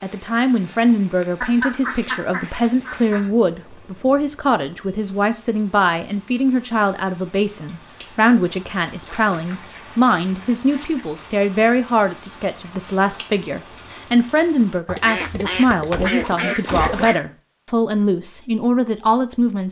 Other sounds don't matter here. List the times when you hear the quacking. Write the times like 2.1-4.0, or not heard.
1.4-3.3, 9.1-11.1, 14.8-17.2.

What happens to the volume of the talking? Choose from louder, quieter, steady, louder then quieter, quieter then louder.
steady.